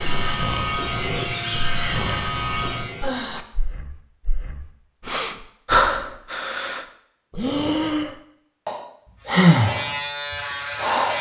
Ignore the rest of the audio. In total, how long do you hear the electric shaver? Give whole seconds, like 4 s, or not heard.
5 s.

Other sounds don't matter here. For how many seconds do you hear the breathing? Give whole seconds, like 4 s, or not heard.
11 s.